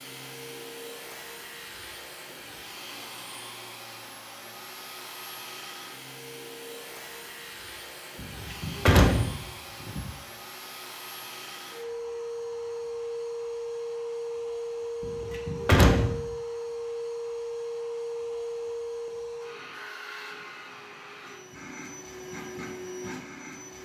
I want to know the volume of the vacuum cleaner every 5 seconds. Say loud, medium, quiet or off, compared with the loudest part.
medium, medium, loud, loud, medium.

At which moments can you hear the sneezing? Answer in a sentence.
The sneezing can't be heard in this clip.